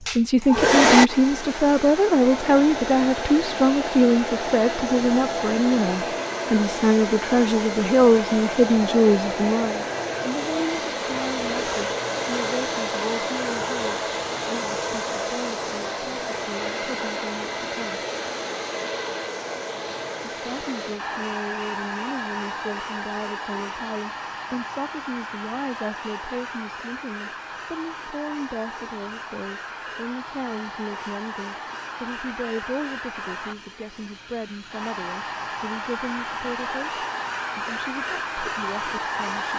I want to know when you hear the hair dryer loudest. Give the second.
1 s.